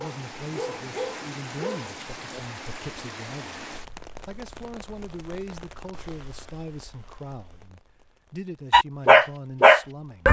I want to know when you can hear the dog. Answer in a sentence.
The dog can be heard from 0.0 to 2.4 s and from 8.7 to 10.2 s.